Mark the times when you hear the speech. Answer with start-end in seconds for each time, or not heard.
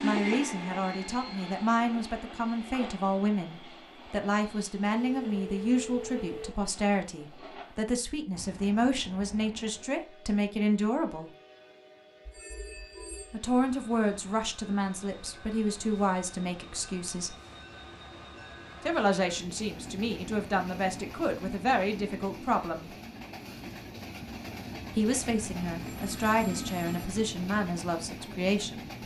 0.0-11.3, 13.3-17.4, 18.9-22.9, 24.9-28.9.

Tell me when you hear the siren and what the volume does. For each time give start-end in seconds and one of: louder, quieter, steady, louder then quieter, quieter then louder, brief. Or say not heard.
not heard.